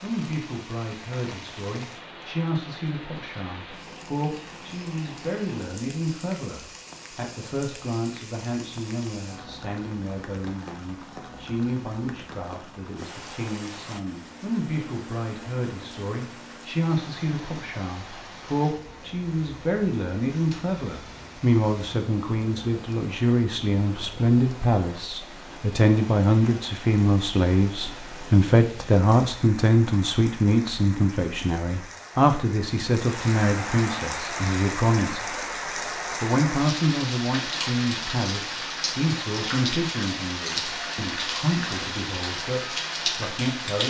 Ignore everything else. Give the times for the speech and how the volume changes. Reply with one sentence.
The speech can be heard from 0.0 to 35.4 s, getting louder; and from 36.2 to 43.8 s, getting quieter.